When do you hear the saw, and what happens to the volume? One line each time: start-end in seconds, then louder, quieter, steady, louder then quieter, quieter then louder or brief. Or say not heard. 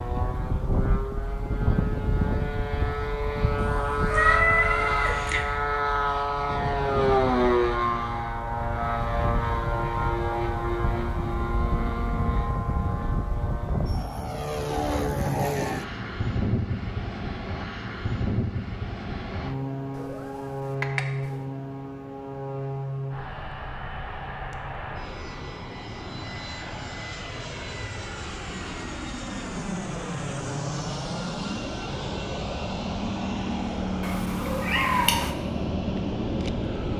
not heard.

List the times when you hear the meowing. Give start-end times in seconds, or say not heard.
3.5-5.5, 19.9-21.3, 34.0-35.3.